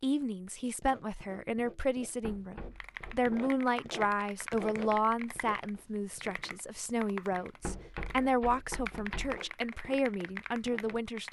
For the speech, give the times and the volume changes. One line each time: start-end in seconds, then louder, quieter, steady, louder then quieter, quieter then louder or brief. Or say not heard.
0.0-11.2 steady.